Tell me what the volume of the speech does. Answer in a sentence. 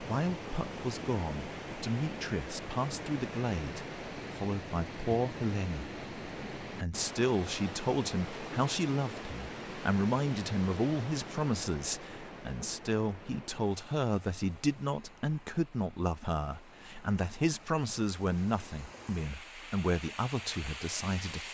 The loudness of the speech stays about the same.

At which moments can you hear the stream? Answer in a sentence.
You can hear the stream from 0.0 to 21.4 s.